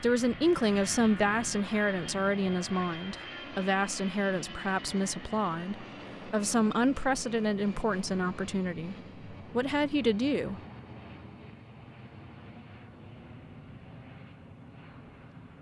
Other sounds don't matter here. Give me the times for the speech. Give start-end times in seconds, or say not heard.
0.0-10.6.